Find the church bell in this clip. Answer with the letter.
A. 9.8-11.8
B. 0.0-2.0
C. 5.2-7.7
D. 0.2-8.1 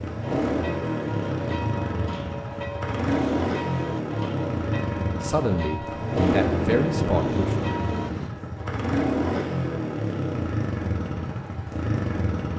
D.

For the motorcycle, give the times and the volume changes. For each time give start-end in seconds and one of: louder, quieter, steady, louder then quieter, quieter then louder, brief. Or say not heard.
0.0-12.5 steady.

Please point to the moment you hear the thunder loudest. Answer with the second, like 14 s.
7 s.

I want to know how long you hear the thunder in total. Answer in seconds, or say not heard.
2 s.